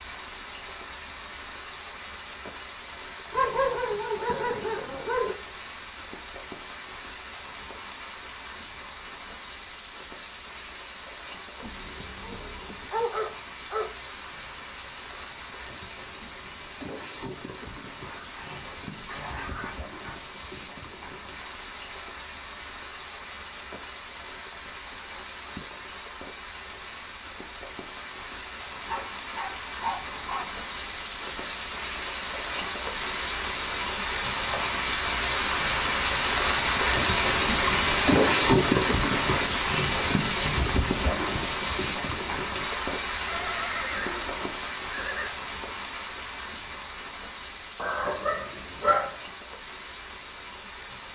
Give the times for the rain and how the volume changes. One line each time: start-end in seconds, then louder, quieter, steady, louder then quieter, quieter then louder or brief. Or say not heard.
0.0-51.1 louder then quieter.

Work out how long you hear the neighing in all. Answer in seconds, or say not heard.
3 s.